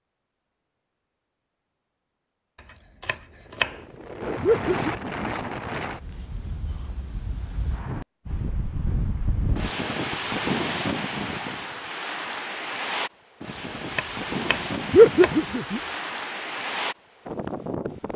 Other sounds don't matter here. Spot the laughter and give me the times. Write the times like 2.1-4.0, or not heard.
4.4-5.3, 14.9-15.8.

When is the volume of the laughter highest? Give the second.
15 s.